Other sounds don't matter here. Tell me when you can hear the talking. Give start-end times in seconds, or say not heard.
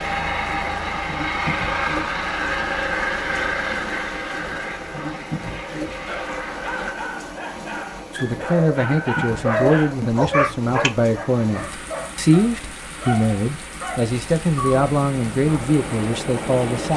8.1-16.9.